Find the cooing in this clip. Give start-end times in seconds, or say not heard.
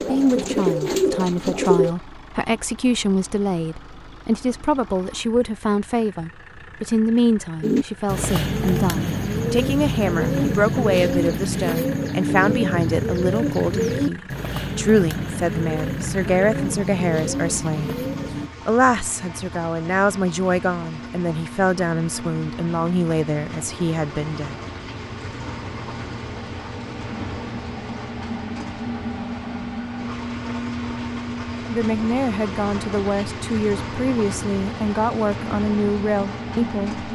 0.0-1.9, 7.6-18.5.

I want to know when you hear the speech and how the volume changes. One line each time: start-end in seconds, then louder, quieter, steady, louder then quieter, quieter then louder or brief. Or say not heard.
0.0-17.9 steady
18.6-24.6 steady
31.7-37.0 steady.